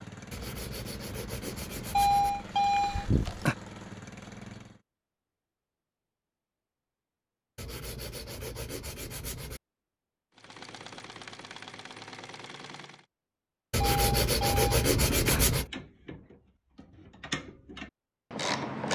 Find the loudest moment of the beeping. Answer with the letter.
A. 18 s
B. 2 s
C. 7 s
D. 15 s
B.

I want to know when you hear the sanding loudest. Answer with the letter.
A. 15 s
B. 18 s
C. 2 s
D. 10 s
A.